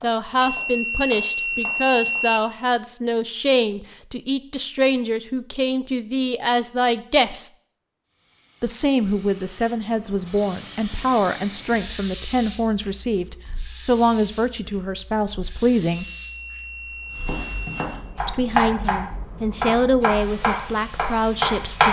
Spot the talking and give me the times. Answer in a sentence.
You can hear the talking from 0.0 to 7.5 s, from 8.6 to 16.1 s and from 18.2 to 21.8 s.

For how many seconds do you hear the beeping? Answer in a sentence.
You can hear the beeping for 4 seconds altogether.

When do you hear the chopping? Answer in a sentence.
You can hear the chopping from 0.0 to 2.2 s, from 17.2 to 19.0 s and from 19.6 to 21.8 s.